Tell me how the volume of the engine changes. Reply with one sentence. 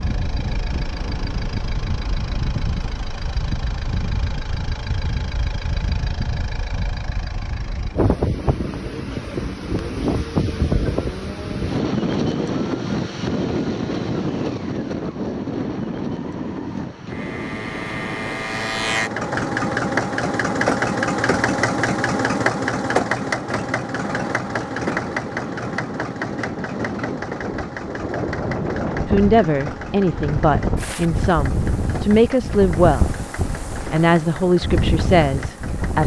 The volume of the engine goes up, then down.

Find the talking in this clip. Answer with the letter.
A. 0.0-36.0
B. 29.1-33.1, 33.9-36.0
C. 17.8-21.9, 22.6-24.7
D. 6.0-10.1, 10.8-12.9
B.